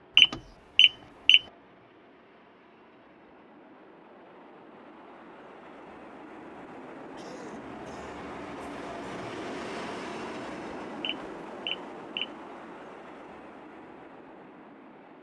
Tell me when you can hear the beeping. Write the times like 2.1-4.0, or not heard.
0.1-1.4, 11.0-12.3.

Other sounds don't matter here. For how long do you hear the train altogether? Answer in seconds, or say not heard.
15 s.